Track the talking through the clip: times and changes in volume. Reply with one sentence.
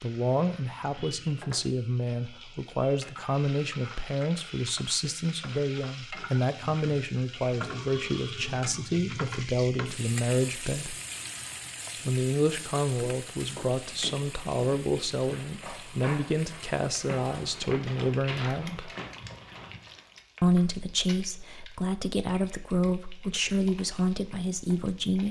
You can hear the talking from 0.0 to 10.9 s, at a steady volume; from 12.1 to 18.9 s, at a steady volume; and from 20.4 to 25.2 s, at a steady volume.